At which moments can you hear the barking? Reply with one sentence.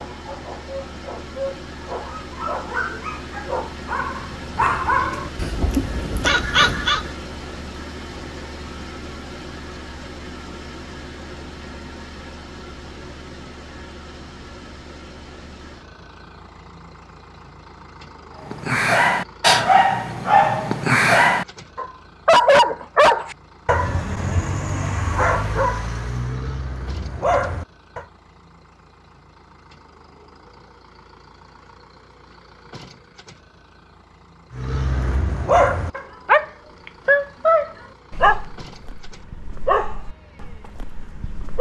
The barking can be heard from 0.0 to 7.1 s, from 18.5 to 28.1 s and from 34.5 to 41.5 s.